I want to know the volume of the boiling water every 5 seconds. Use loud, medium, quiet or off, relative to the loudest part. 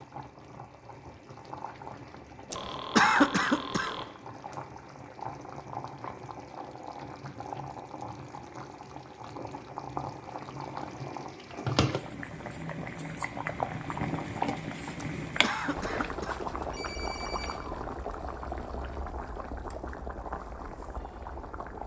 medium, medium, loud, loud, medium.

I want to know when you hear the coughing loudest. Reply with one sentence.
The loudest moment of the coughing is at 3 seconds.